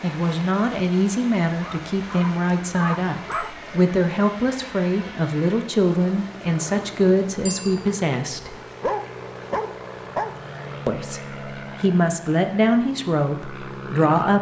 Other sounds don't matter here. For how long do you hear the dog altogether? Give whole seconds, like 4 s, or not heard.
4 s.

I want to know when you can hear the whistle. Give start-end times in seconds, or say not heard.
not heard.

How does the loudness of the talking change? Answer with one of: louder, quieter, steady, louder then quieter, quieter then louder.
steady.